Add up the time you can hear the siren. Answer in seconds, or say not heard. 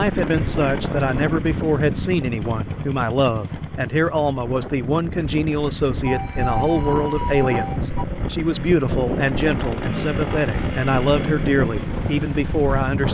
2 s.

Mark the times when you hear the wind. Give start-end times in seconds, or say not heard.
0.0-13.0.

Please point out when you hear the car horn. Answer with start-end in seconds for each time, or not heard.
not heard.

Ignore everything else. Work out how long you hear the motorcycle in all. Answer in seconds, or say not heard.
13 s.